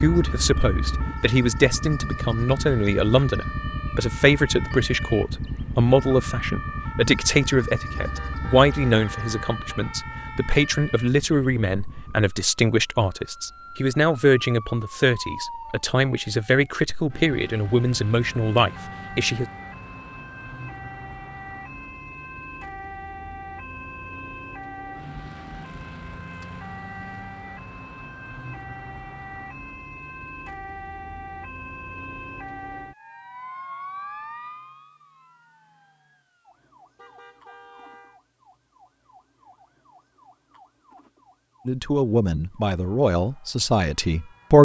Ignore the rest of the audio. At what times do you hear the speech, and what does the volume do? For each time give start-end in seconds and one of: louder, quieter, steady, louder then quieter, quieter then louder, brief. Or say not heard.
0.0-19.4 steady
41.6-44.5 brief.